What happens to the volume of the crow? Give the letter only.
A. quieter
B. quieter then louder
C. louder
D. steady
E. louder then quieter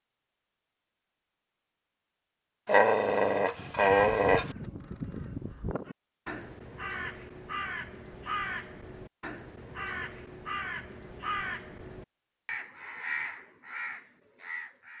D.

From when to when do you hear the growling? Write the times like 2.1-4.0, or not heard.
2.6-4.5.